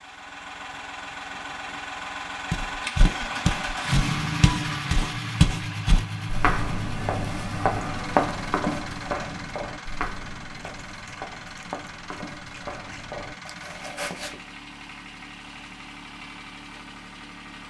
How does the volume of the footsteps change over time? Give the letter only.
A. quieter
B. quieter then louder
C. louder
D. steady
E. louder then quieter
A.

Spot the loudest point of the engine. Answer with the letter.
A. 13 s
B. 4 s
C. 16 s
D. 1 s
B.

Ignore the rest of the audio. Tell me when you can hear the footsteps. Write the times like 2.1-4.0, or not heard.
2.5-14.3.